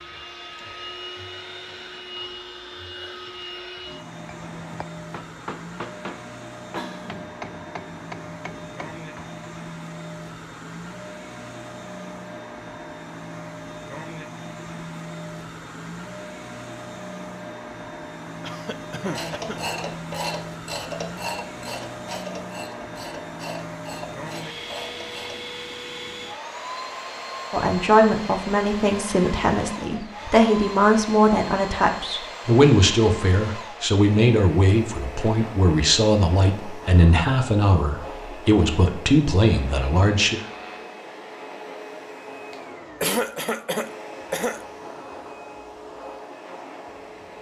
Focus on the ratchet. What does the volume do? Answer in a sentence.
The loudness of the ratchet goes down.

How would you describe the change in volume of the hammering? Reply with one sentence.
The volume of the hammering stays about the same.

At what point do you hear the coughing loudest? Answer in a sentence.
The loudest moment of the coughing is at 43 seconds.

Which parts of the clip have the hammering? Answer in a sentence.
The hammering can be heard from 4.3 to 9.3 s.